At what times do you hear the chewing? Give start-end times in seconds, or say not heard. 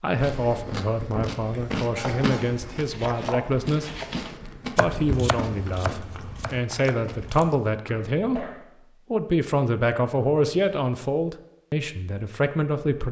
0.1-7.5.